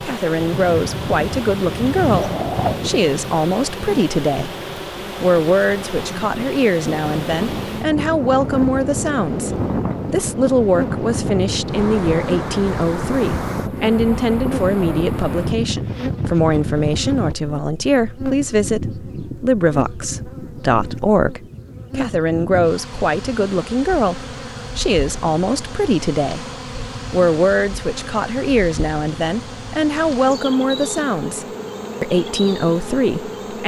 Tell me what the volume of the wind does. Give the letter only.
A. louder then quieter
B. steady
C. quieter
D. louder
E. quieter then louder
E.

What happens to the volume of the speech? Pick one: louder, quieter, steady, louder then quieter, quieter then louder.
steady.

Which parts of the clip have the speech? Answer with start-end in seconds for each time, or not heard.
0.0-4.5, 5.2-9.5, 10.1-26.4, 27.1-33.6.